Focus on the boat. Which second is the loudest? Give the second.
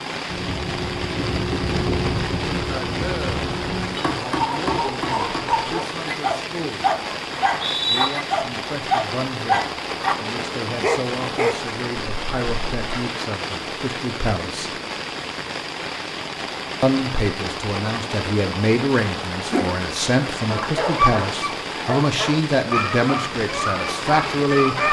2 s.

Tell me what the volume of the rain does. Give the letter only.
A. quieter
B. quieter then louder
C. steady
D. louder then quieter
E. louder
C.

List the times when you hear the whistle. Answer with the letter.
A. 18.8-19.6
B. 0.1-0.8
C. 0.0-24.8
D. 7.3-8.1
D.